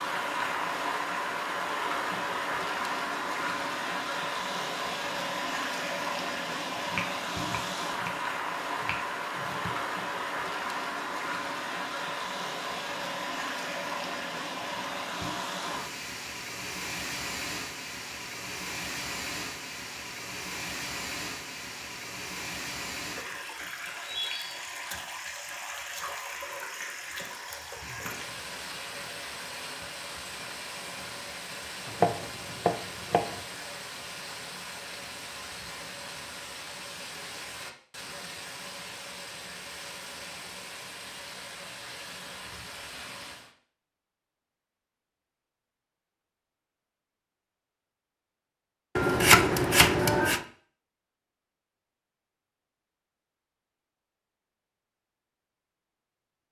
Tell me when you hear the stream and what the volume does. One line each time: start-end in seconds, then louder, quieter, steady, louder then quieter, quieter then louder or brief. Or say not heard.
0.0-43.5 quieter.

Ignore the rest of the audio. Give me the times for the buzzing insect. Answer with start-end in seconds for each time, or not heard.
not heard.